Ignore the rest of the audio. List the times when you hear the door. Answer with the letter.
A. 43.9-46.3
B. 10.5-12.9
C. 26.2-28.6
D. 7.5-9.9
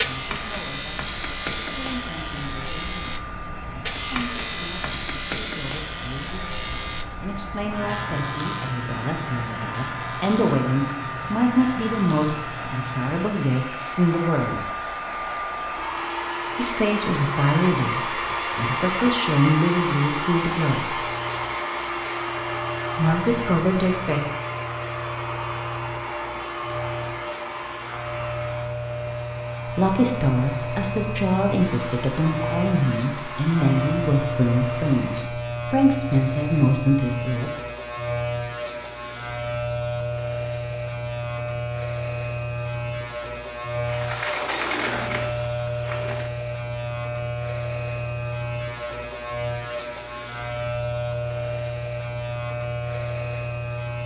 A.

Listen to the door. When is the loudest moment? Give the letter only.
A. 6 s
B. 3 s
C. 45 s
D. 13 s
C.